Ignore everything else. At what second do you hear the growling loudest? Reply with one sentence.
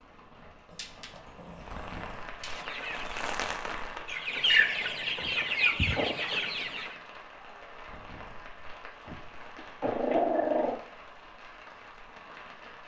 The volume of the growling peaks at 10 seconds.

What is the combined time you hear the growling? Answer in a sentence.
The growling can be heard for 5 seconds in total.